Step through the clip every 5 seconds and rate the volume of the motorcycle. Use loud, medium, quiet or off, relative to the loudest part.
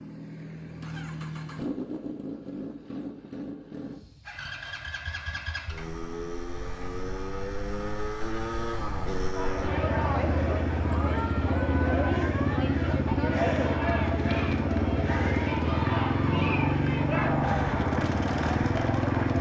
medium, medium, loud, loud.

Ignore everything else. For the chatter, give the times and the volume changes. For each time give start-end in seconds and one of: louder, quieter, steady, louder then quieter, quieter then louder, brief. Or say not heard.
9.2-19.3 steady.